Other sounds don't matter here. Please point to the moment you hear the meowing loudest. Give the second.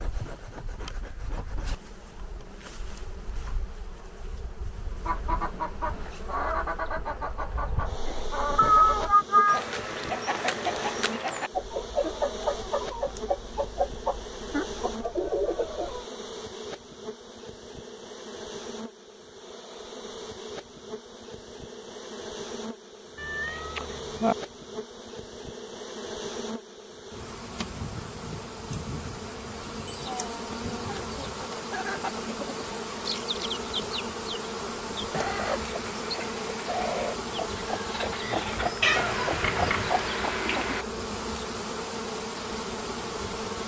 9 s.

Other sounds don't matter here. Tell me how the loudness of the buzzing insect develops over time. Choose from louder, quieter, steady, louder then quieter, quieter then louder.
louder.